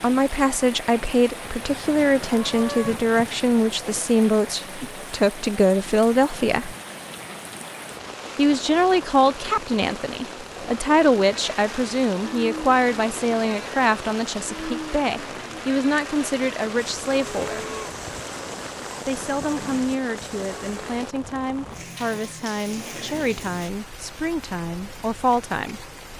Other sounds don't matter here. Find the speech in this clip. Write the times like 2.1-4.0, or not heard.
0.0-6.8, 8.3-17.6, 19.1-25.8.